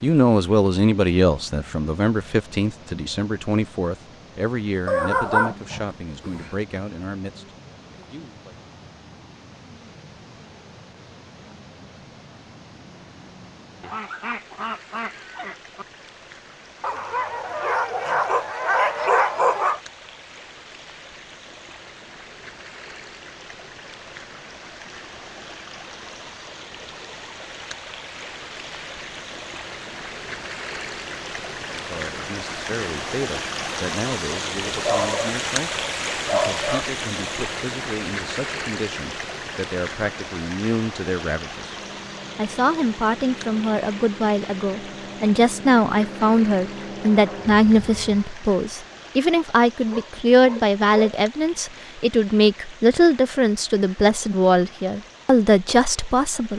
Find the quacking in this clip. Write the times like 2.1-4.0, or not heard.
13.8-15.8.